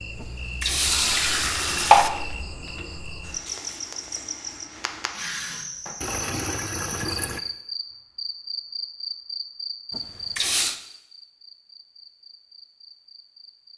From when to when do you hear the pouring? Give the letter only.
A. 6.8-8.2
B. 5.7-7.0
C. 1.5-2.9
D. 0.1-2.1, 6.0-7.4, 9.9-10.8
D.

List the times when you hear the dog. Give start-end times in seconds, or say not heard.
not heard.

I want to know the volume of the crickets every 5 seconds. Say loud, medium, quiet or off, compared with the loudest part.
loud, loud, medium.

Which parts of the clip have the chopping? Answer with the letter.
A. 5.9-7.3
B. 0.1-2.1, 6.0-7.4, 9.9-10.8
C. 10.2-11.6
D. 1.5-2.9
D.